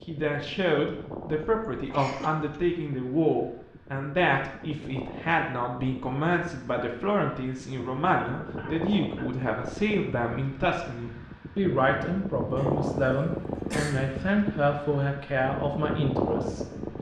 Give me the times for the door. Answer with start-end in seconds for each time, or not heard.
not heard.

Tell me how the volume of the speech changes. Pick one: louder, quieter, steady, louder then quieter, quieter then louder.
steady.